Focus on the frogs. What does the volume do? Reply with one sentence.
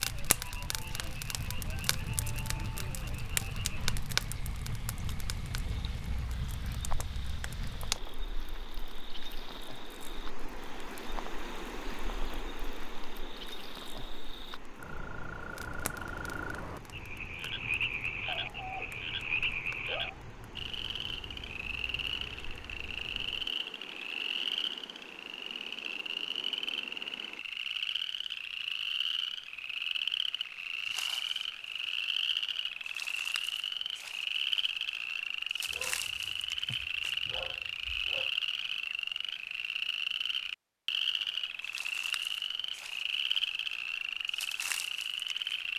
The volume of the frogs goes up.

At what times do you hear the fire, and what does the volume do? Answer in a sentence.
You can hear the fire from 0.0 to 23.6 s, getting quieter then louder.